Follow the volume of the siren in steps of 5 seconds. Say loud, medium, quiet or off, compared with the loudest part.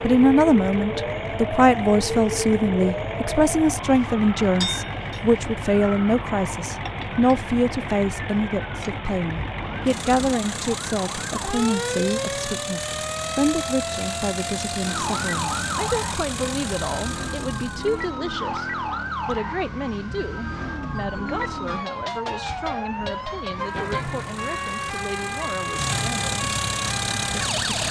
loud, medium, loud, loud, loud, loud.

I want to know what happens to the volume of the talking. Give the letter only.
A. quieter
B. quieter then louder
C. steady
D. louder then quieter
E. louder
A.